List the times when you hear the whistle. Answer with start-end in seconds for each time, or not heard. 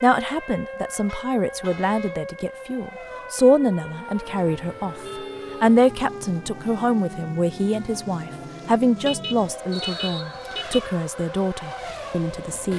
9.7-10.8.